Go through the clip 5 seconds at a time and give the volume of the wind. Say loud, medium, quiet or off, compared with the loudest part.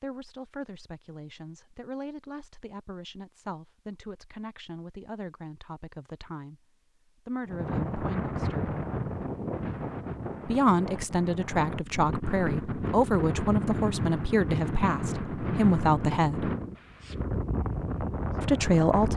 off, loud, loud, loud.